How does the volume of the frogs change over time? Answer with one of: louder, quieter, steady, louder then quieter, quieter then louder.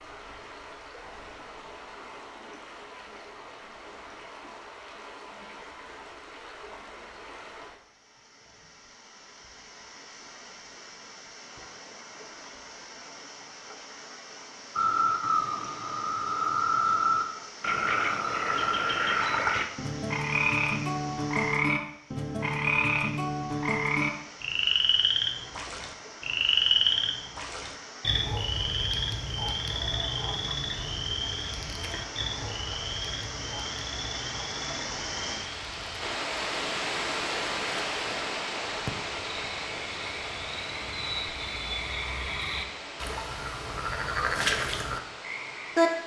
quieter then louder.